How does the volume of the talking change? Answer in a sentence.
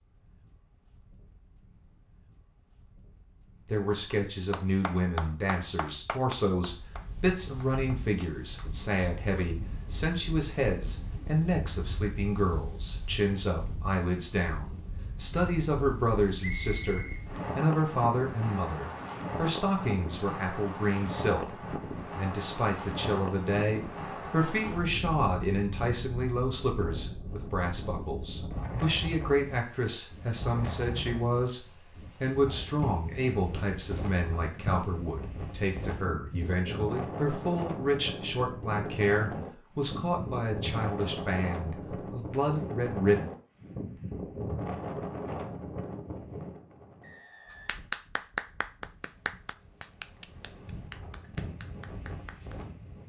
The loudness of the talking stays about the same.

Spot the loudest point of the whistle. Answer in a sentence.
The loudest moment of the whistle is at 17 seconds.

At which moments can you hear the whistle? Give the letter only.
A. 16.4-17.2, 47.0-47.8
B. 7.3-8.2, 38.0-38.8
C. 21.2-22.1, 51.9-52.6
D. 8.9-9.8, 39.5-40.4
A.